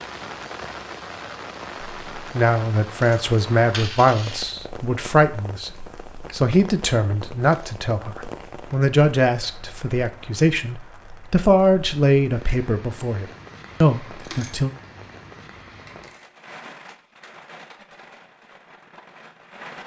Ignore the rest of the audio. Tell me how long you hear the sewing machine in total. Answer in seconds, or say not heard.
not heard.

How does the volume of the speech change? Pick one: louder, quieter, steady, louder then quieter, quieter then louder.
steady.